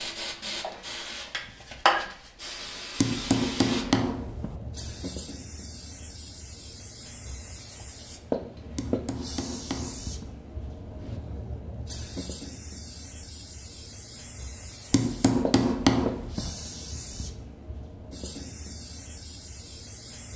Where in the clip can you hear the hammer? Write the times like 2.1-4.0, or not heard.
3.0-4.5, 8.8-10.3, 14.9-16.5.